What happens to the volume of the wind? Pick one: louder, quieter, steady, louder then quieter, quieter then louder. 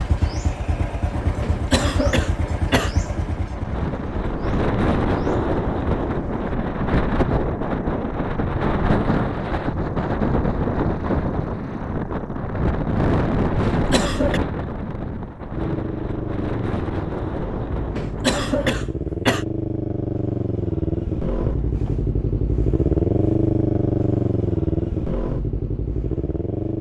louder then quieter.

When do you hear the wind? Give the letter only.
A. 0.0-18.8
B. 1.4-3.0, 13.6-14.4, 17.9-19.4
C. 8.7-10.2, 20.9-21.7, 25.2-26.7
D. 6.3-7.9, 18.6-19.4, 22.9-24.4
A.